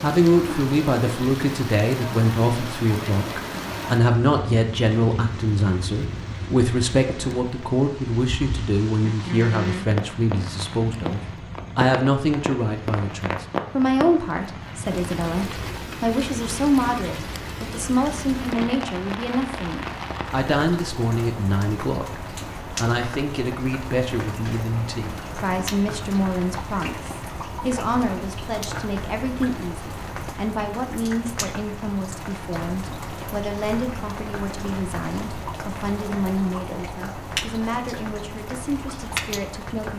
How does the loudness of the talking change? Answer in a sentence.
The volume of the talking goes down.